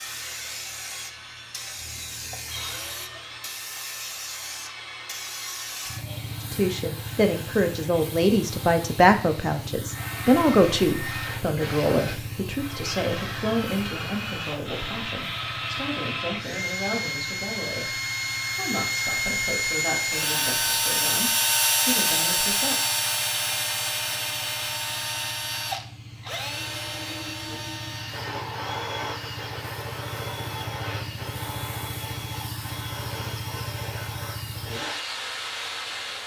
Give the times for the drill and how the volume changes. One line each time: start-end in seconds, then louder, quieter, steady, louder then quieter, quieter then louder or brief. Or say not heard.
0.0-36.2 louder then quieter.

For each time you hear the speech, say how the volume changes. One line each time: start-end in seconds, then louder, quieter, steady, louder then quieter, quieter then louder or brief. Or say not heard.
6.4-22.8 quieter.